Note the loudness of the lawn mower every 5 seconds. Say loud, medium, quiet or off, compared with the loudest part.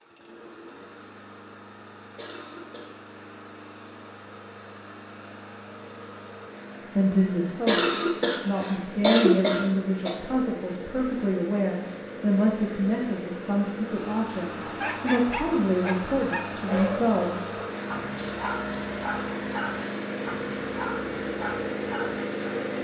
quiet, medium, medium, loud, loud.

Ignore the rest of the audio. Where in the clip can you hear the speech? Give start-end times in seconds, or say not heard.
7.0-17.4.